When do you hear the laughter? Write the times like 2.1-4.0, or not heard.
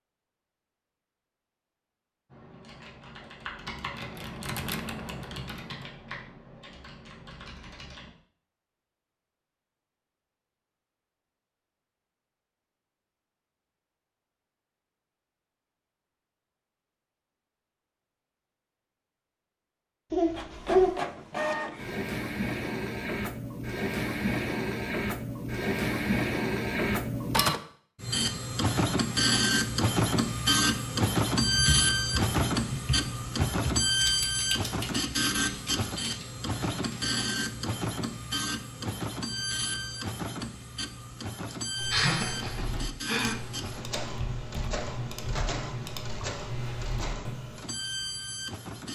20.1-20.9, 41.5-43.4.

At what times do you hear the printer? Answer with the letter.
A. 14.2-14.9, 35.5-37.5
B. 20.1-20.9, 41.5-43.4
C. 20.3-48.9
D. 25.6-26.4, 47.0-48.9
C.